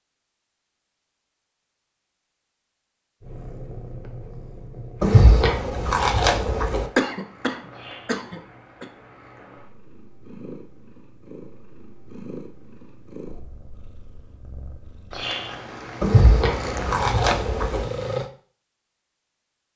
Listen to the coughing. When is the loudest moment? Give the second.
7 s.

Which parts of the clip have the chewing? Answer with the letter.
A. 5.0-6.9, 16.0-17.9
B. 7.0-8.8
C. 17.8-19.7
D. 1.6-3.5
A.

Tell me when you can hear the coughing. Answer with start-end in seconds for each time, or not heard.
7.0-8.8.